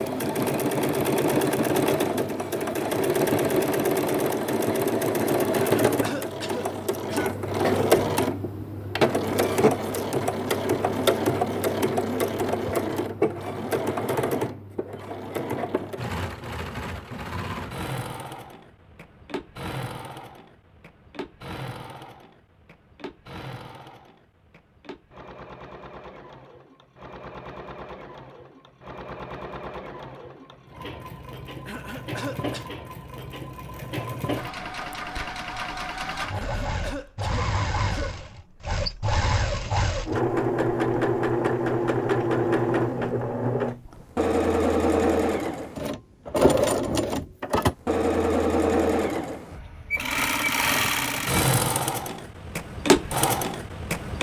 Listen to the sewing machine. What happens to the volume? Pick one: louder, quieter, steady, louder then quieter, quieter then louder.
quieter then louder.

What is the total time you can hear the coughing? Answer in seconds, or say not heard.
5 s.